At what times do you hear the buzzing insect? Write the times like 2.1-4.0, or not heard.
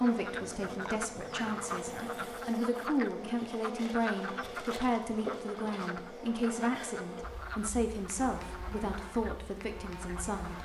0.0-10.6.